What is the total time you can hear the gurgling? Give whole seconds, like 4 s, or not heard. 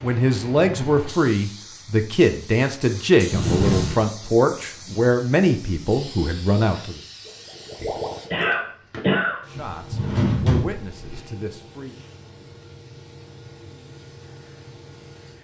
2 s.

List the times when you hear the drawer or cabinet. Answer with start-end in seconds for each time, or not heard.
3.3-4.0, 9.6-11.2.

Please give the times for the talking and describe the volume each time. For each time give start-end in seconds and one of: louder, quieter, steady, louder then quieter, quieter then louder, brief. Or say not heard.
0.0-7.0 steady
9.5-12.0 brief.